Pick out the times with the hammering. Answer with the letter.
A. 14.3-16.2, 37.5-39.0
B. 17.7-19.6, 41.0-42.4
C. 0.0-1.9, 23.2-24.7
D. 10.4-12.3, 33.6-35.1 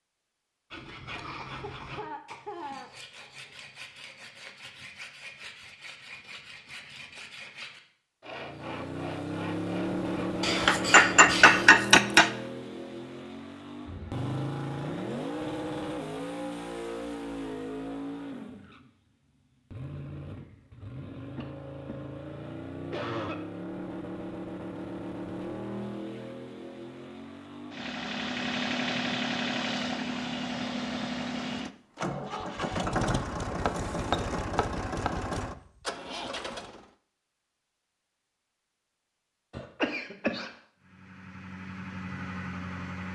D.